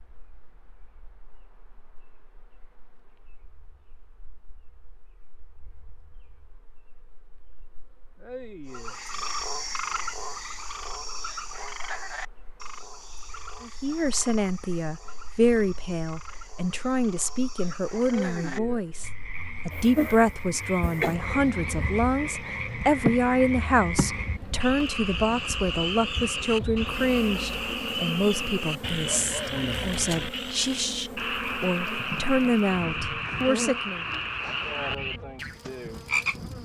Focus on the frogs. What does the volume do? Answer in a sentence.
The loudness of the frogs goes down, then up.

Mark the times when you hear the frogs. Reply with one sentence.
You can hear the frogs from 8.7 to 36.6 s.